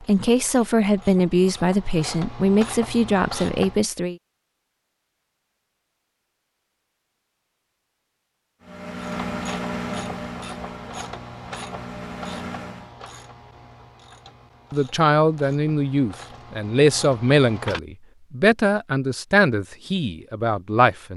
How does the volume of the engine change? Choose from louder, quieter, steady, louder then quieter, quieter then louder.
quieter then louder.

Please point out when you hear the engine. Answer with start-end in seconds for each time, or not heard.
8.6-12.9.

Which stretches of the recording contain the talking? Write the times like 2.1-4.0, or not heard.
0.0-4.2, 14.7-21.1.